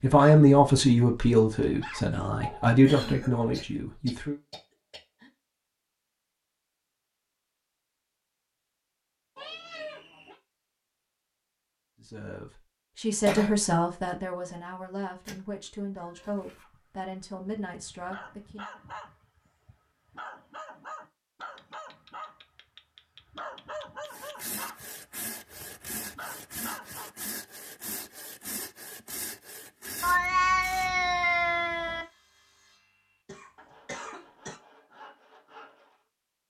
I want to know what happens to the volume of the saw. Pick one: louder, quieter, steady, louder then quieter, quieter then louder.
quieter.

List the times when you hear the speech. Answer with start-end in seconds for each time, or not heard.
0.0-4.3, 12.0-18.6.